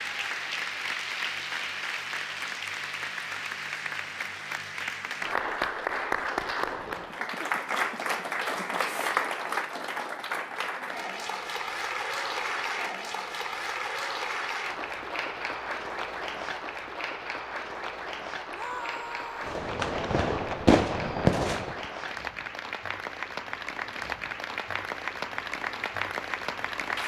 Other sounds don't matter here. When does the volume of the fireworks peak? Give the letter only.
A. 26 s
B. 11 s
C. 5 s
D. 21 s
D.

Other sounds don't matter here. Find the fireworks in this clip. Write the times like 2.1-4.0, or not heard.
19.4-21.9.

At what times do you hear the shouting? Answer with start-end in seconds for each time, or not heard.
18.5-19.6.